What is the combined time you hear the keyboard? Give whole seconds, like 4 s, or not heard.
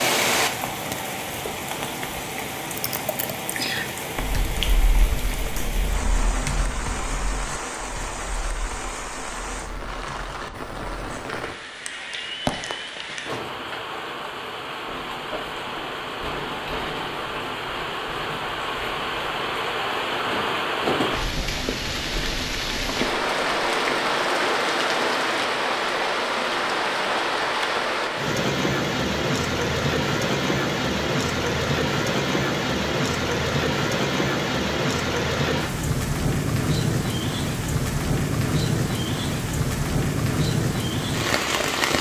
9 s.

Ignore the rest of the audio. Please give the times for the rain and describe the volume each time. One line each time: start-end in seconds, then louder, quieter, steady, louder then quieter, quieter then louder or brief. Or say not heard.
0.0-41.9 louder.